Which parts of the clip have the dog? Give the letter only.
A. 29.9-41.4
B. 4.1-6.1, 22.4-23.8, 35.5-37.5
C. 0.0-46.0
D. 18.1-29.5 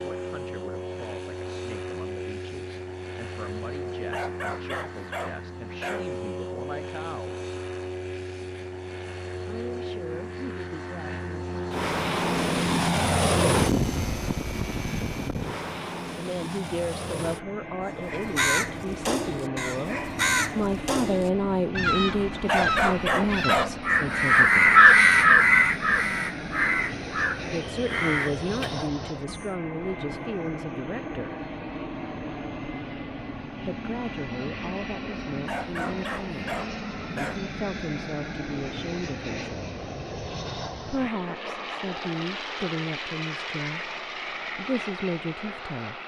B.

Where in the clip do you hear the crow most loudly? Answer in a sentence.
The volume of the crow peaks at 25 seconds.